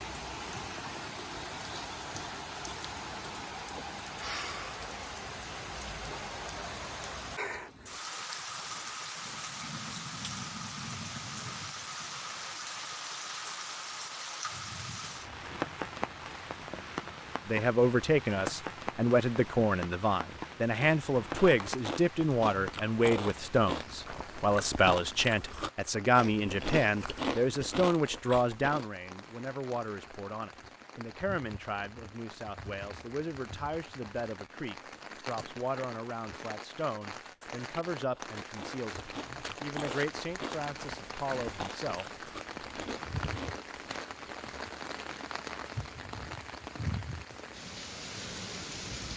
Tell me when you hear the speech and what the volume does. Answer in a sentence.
You can hear the speech from 17.4 to 42.0 s, getting quieter.